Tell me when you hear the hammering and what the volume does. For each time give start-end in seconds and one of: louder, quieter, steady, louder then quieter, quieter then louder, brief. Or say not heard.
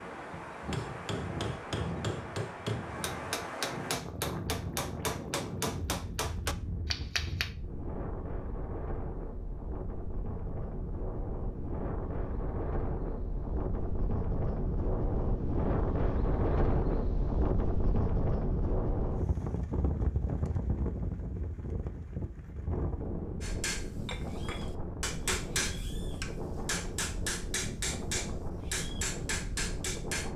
0.6-7.5 steady
23.4-30.3 louder.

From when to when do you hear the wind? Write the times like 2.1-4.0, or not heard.
0.0-30.3.